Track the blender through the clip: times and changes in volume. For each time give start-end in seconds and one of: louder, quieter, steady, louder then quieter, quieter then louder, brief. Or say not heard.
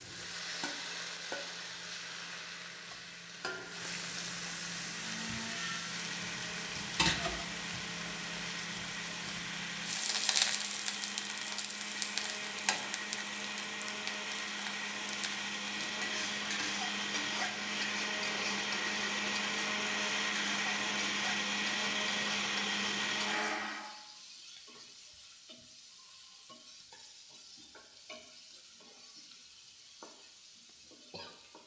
4.7-23.9 louder.